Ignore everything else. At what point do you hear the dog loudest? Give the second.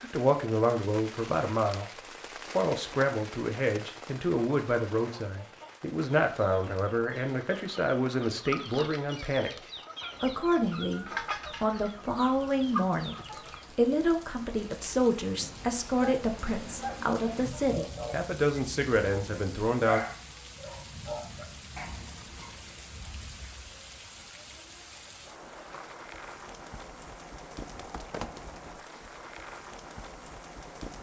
20 s.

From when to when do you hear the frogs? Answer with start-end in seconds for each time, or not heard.
not heard.